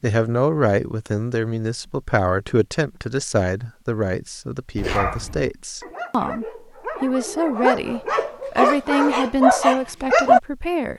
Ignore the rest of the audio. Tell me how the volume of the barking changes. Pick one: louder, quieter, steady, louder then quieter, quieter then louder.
louder.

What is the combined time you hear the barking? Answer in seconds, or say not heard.
6 s.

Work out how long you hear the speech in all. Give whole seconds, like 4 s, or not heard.
11 s.